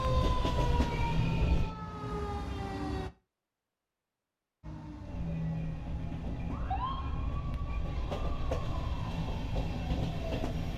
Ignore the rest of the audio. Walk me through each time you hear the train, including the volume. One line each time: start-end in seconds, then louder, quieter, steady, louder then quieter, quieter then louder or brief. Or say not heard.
0.0-1.8 brief
5.0-10.7 louder.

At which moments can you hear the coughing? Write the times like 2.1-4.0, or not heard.
not heard.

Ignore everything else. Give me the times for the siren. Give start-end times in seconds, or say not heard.
0.0-3.1, 4.6-10.4.